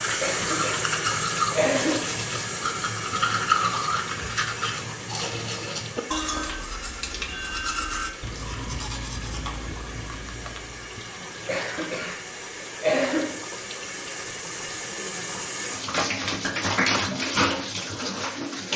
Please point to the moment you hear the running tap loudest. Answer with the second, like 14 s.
17 s.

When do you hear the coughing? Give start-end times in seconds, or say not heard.
0.2-2.0, 11.4-13.3.